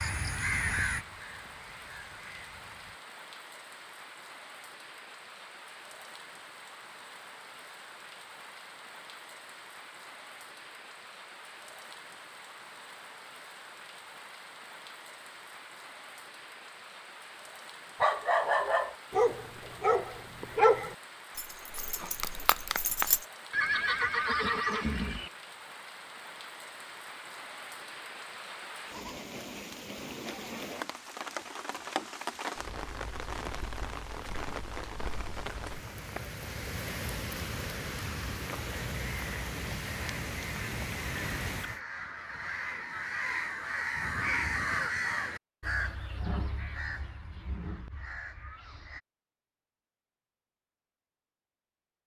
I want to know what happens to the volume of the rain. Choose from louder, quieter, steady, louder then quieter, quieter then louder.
louder.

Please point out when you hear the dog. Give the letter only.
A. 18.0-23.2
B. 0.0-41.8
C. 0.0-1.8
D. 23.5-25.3
A.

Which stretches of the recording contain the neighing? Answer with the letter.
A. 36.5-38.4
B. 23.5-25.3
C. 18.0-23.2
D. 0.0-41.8
B.